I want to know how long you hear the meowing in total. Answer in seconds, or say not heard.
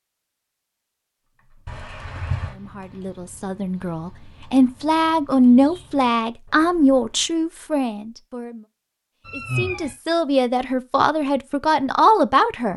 2 s.